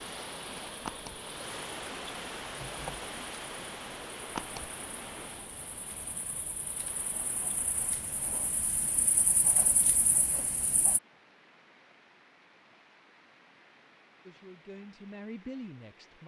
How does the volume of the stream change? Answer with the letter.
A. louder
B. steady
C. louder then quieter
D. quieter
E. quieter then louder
D.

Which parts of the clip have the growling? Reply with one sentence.
You can't hear the growling here.